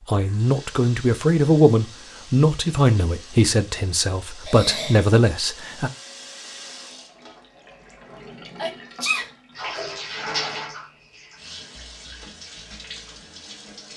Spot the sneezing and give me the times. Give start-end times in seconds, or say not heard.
4.5-5.2, 8.6-9.3.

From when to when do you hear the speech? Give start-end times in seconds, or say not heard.
0.1-5.9.